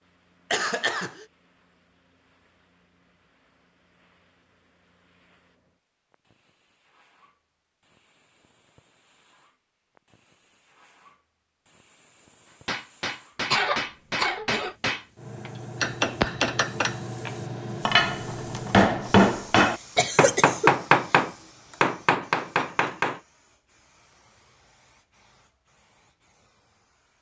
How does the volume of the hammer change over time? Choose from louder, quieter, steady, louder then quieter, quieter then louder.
louder.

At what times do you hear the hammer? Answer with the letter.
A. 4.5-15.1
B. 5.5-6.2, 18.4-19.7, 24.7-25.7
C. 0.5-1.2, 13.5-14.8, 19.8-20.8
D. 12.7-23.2
D.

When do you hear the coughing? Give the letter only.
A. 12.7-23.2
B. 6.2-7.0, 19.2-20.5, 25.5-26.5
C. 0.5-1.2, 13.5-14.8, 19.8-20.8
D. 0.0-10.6
C.